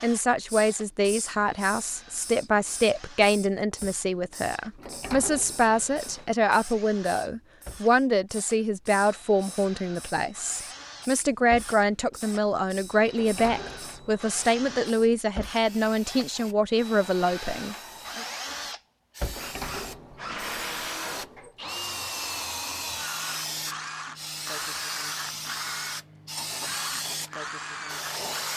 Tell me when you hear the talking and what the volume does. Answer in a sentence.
The talking can be heard from 0.0 to 18.2 s, at a steady volume.